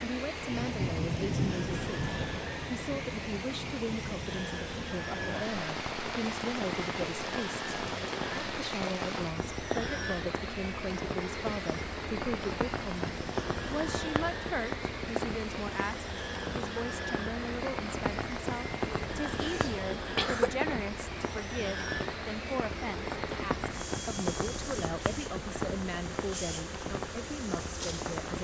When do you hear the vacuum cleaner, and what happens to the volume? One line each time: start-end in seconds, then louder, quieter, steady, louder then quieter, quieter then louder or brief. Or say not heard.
0.0-28.3 steady.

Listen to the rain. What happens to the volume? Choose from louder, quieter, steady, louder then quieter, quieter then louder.
steady.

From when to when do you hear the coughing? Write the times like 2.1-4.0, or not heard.
19.4-20.6.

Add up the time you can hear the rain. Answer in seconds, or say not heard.
28 s.